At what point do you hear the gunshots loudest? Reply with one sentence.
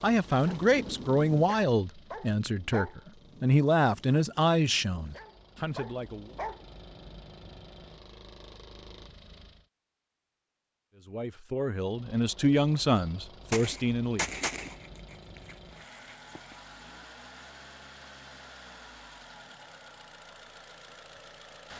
The loudest moment of the gunshots is at 14 seconds.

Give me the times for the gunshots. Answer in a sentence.
You can hear the gunshots from 13.5 to 16.6 s.